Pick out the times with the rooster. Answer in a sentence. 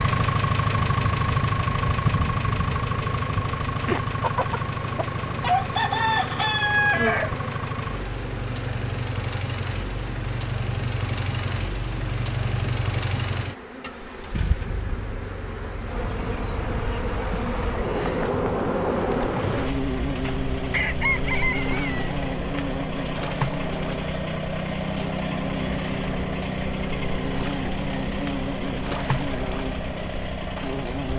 The rooster can be heard from 4.2 to 7.4 s and from 20.7 to 22.1 s.